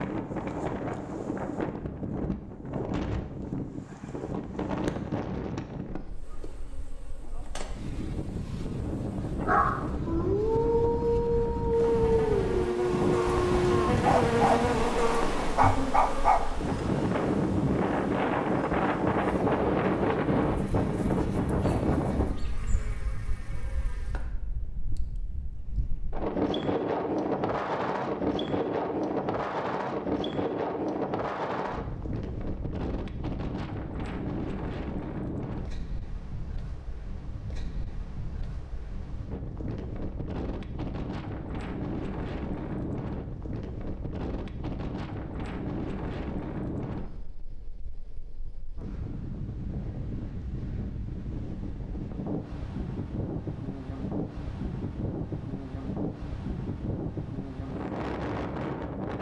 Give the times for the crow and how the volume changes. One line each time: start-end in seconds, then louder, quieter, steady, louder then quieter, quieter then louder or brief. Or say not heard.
not heard.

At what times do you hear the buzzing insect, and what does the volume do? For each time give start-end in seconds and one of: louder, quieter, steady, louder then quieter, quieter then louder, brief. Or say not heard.
6.0-24.3 louder then quieter.